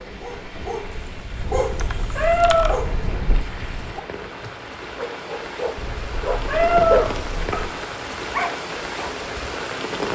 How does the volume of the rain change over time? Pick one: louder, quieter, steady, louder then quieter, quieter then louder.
louder.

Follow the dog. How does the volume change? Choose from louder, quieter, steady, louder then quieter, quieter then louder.
louder.